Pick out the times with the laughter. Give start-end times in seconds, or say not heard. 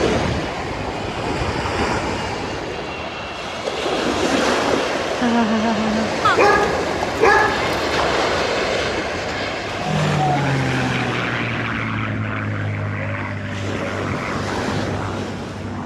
5.2-6.2.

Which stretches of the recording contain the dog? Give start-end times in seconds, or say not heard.
6.2-7.7.